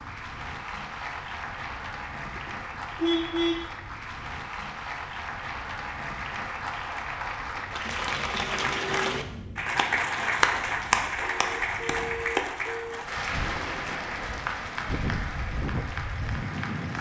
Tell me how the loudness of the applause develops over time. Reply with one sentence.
The volume of the applause goes up, then down.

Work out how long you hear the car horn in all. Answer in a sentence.
You can hear the car horn for 3 seconds altogether.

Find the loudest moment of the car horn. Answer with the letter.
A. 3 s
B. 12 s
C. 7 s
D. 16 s
A.